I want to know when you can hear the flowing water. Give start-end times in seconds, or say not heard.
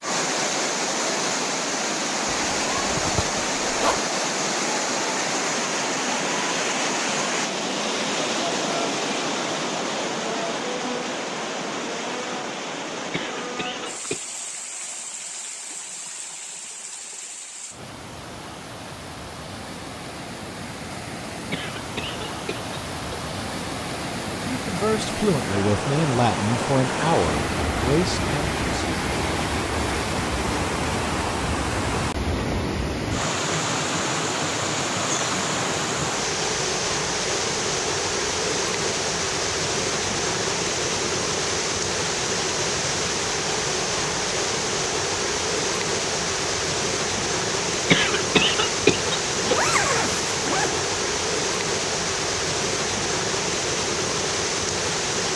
0.0-55.3.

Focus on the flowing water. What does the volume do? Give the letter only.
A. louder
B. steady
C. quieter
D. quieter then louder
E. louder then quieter
D.